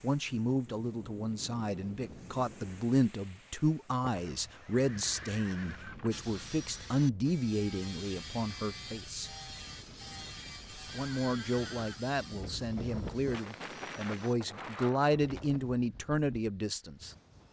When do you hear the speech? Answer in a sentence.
You can hear the speech from 0.0 to 9.3 s and from 10.9 to 17.1 s.